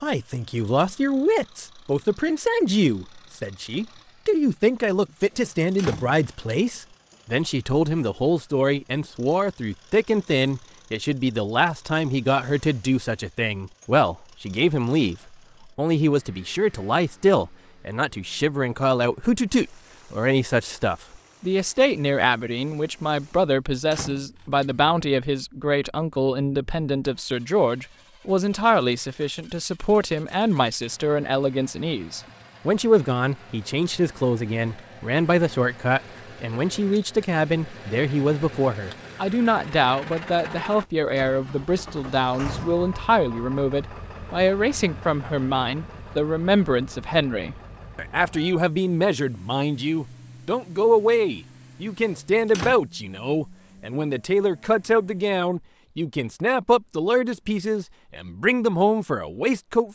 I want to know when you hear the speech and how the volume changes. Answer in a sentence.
The speech can be heard from 0.0 to 59.9 s, at a steady volume.